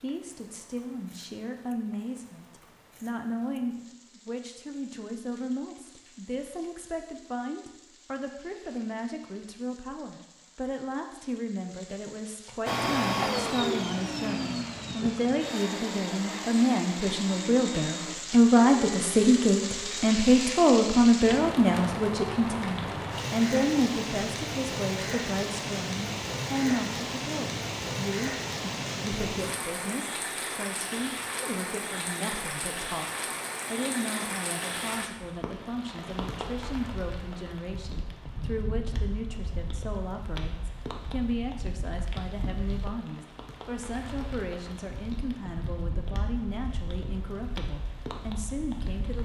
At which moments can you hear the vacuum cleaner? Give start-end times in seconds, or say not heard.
12.7-20.1.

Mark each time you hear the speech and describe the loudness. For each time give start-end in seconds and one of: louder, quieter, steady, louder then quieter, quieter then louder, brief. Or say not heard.
0.0-49.2 louder then quieter.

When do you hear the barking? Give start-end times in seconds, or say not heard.
not heard.